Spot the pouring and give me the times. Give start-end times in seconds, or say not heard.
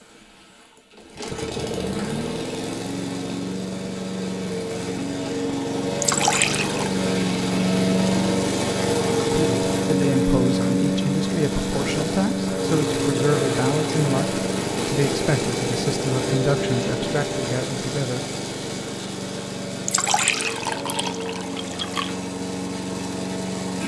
6.0-7.0, 19.9-22.1.